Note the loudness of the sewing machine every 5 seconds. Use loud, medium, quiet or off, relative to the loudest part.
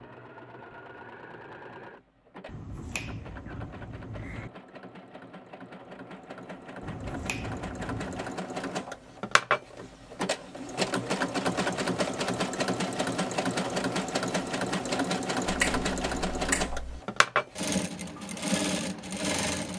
quiet, medium, loud, loud.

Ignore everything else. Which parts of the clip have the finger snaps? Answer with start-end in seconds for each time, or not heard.
2.5-4.5, 6.8-8.2, 15.4-16.8.